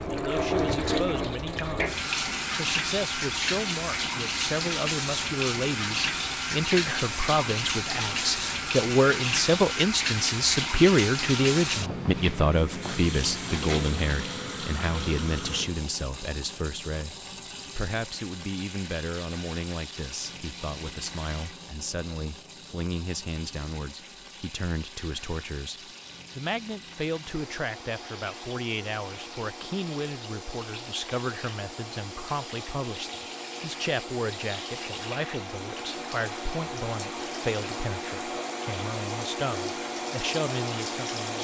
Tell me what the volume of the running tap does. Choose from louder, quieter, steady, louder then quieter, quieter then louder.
quieter then louder.